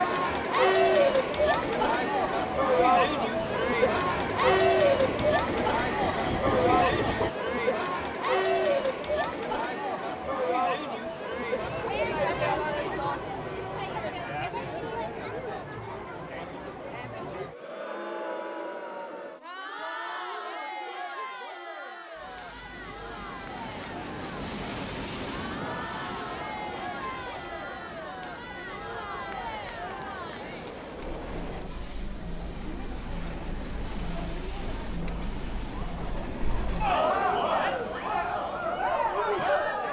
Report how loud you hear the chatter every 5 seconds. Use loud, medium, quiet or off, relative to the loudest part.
loud, loud, medium, quiet, quiet, quiet, quiet, medium.